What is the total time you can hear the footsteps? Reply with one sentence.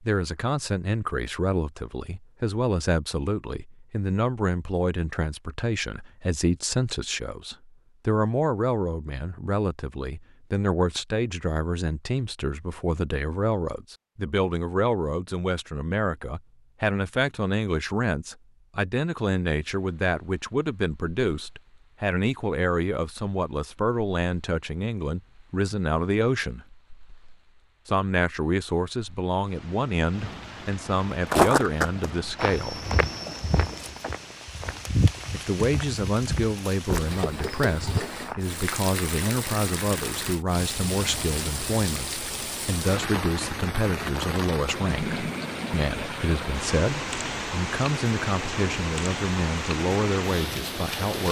You can hear the footsteps for 7 seconds altogether.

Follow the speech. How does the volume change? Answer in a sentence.
The loudness of the speech stays about the same.